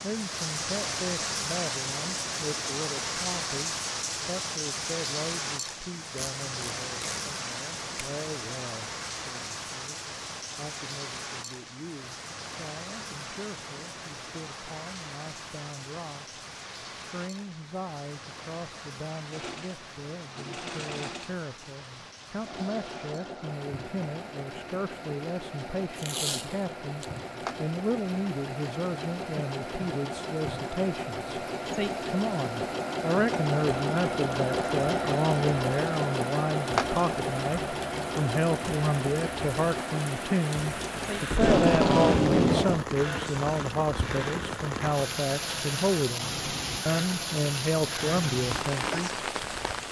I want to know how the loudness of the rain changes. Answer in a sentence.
The volume of the rain goes down, then up.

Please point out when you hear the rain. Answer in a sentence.
You can hear the rain from 0.0 to 49.8 s.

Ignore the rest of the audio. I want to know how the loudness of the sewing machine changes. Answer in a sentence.
The loudness of the sewing machine goes up, then down.